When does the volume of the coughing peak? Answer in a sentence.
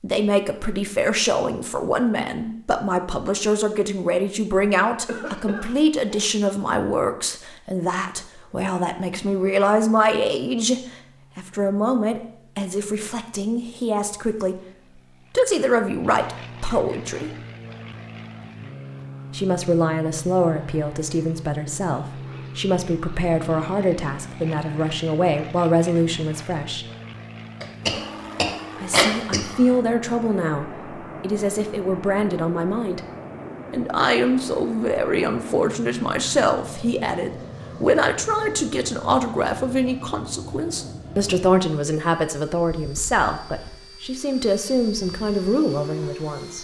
The volume of the coughing peaks at 29 seconds.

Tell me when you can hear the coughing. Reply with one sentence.
You can hear the coughing from 5.0 to 6.2 s and from 27.6 to 29.4 s.